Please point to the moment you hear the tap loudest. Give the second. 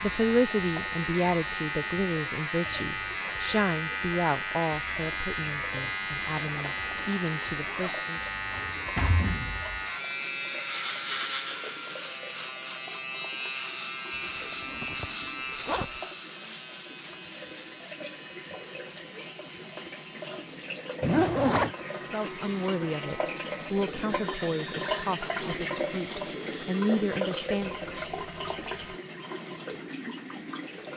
25 s.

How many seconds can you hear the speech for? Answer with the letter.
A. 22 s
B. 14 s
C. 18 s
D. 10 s
B.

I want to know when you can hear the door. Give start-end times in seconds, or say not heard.
8.5-9.7.